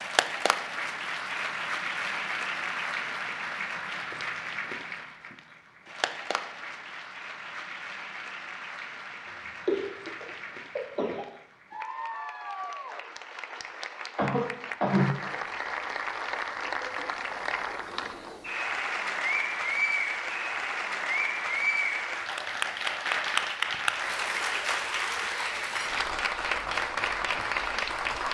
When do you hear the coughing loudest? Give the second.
15 s.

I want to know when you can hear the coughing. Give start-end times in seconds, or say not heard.
9.7-11.2, 14.2-15.2.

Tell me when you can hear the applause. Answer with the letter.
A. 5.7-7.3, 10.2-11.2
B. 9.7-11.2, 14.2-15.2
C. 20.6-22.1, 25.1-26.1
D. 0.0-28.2
D.